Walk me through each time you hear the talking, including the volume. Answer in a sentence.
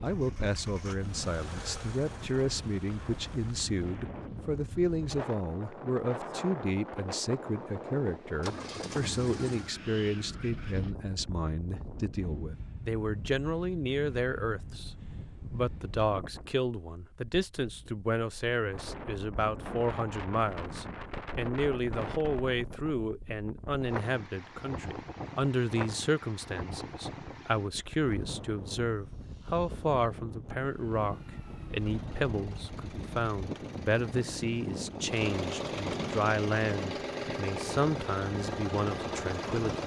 The talking can be heard from 0.0 to 39.8 s, at a steady volume.